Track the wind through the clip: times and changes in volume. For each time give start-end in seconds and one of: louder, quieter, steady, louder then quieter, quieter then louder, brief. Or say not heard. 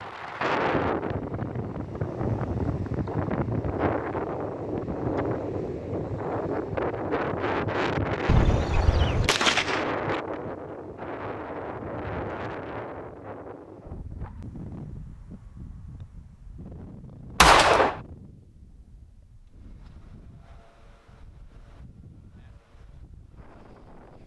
0.0-24.2 quieter.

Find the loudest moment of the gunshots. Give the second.
18 s.